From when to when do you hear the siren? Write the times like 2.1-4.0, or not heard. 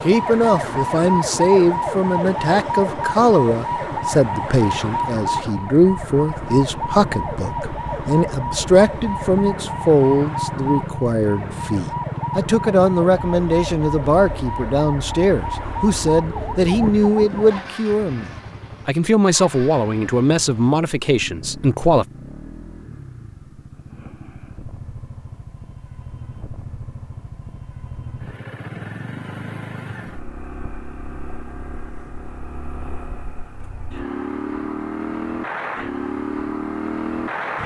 0.0-17.8.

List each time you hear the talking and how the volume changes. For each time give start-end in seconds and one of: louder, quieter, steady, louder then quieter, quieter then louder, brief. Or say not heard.
0.0-22.1 steady.